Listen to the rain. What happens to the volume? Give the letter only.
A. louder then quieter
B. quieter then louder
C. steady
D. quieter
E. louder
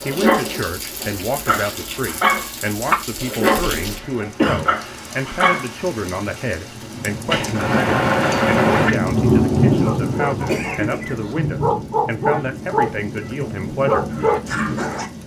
A.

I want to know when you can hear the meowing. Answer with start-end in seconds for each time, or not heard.
7.3-8.9.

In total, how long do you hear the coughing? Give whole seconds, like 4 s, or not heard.
2 s.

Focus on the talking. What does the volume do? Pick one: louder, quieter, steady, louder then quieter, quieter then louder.
steady.